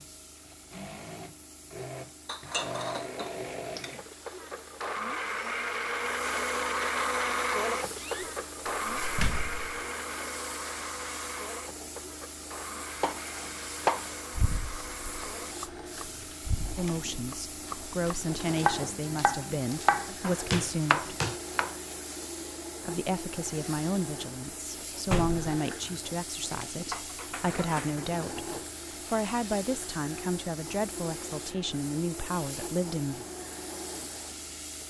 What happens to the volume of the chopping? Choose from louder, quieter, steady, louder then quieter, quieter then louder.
quieter then louder.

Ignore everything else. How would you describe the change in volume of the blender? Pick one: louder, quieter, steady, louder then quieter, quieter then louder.
quieter.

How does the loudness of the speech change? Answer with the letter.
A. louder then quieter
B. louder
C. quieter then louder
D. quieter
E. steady
E.